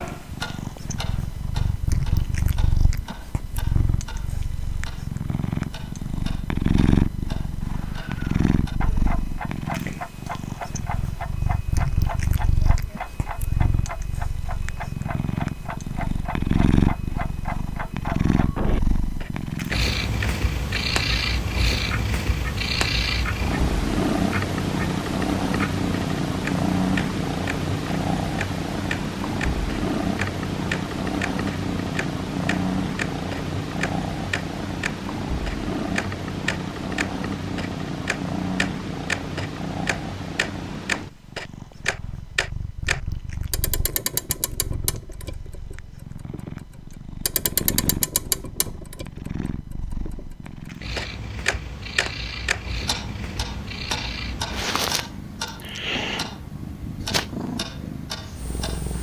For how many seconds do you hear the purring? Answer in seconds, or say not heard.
59 s.